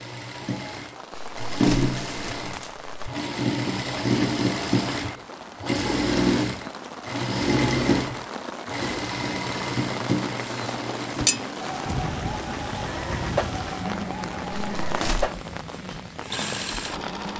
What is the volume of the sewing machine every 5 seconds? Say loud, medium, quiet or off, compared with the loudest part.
loud, loud, medium, medium.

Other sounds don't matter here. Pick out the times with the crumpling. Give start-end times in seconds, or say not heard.
1.1-2.9, 14.5-15.3.